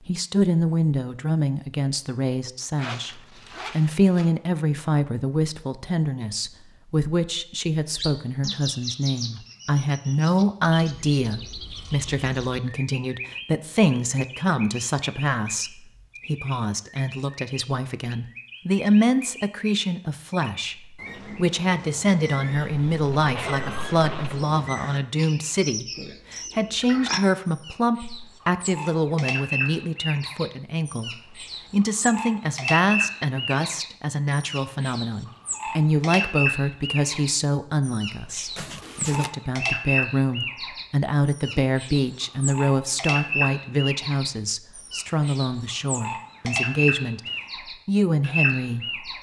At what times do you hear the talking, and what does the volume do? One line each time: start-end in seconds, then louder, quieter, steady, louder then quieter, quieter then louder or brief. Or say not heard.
0.1-49.1 steady.